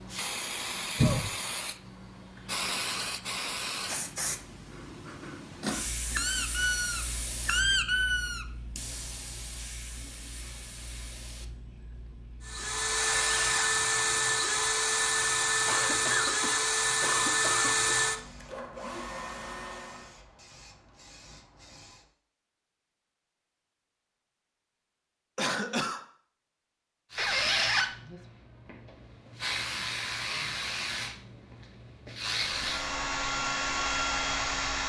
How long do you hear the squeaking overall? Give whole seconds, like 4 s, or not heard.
4 s.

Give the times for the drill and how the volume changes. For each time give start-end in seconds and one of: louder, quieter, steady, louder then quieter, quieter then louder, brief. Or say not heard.
12.4-20.2 quieter
32.5-34.8 brief.